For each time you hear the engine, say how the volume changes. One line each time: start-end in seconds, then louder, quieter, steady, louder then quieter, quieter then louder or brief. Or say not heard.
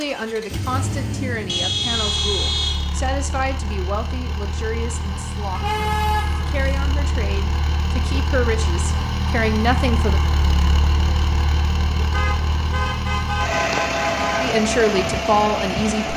0.0-16.1 louder.